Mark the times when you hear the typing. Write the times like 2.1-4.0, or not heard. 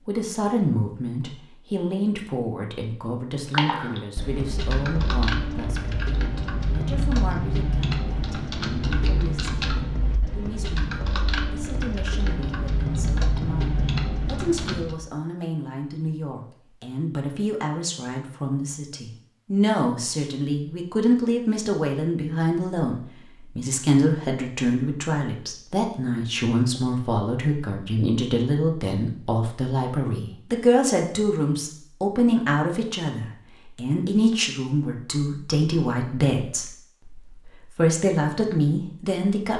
3.5-15.0.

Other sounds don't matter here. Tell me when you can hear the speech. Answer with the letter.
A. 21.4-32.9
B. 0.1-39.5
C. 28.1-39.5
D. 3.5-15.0
B.